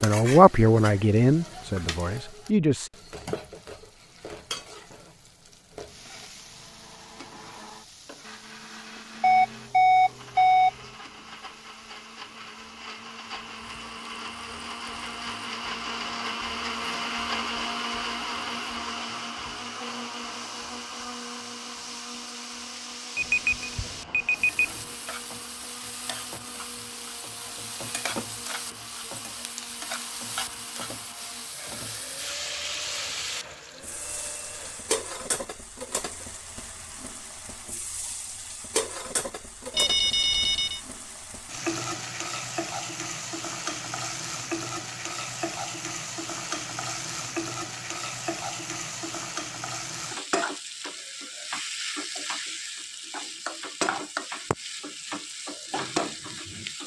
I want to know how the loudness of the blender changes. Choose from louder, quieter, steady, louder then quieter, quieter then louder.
louder then quieter.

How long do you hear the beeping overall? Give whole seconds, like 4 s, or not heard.
4 s.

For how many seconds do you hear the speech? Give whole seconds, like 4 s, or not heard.
3 s.